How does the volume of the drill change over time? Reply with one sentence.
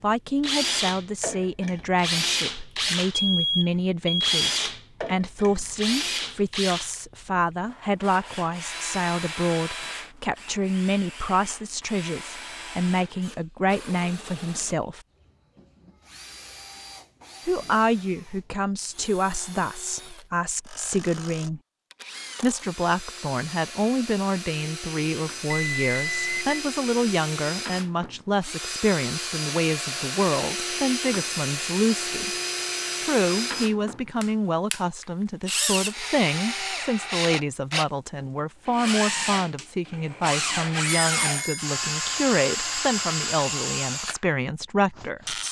The loudness of the drill goes down, then up.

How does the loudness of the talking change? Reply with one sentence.
The volume of the talking stays about the same.